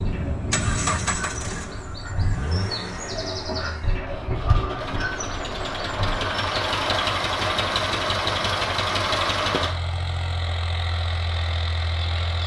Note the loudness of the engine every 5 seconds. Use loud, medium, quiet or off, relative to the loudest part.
medium, loud, medium.